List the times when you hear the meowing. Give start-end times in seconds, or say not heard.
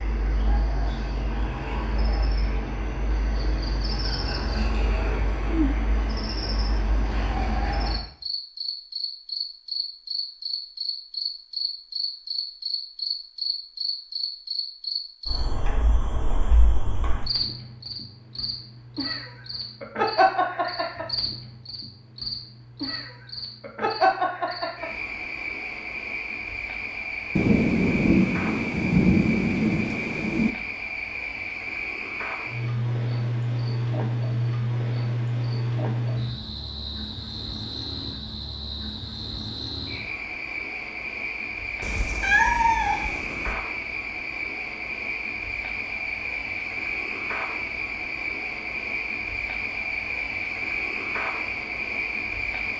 41.8-43.5.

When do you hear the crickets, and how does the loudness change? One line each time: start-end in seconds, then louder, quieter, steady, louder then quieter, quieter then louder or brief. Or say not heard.
0.0-52.7 steady.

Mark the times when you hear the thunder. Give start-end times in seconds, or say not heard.
27.4-30.5.